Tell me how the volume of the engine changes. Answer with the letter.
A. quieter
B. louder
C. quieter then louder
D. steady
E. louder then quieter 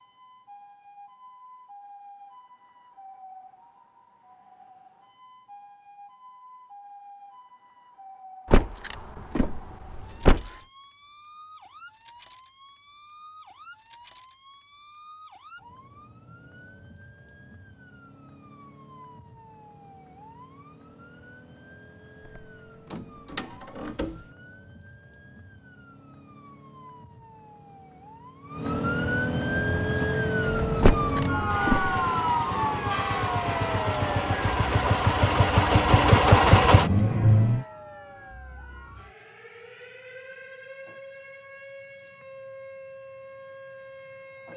B.